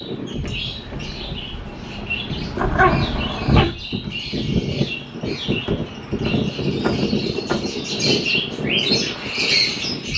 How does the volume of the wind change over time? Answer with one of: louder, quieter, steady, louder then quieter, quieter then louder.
louder.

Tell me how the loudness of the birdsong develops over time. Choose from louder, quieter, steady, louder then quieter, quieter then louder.
louder.